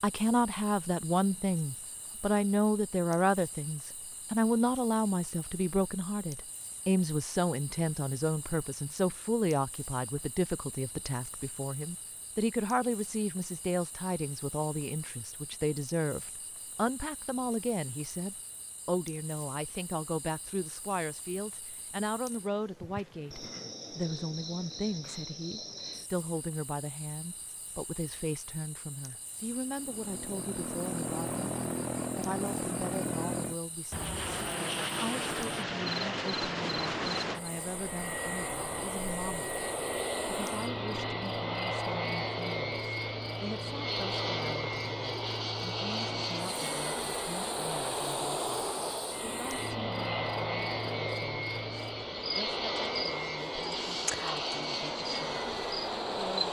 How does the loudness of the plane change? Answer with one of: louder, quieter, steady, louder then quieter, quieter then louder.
steady.